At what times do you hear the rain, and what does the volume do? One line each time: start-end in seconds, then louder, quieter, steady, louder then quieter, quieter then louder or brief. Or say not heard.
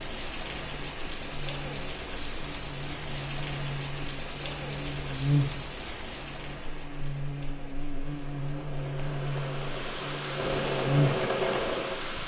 0.0-12.2 quieter then louder.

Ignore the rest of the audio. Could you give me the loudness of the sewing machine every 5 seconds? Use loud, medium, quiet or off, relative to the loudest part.
off, quiet, loud.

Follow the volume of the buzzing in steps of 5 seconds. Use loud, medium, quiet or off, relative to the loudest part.
medium, loud, loud.